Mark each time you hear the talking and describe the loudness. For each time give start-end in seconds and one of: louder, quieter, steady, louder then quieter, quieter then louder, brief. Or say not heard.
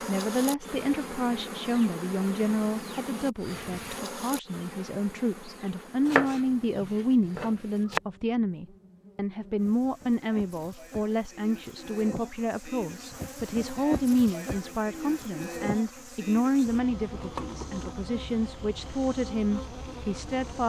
0.1-20.6 steady.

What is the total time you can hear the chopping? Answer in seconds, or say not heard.
2 s.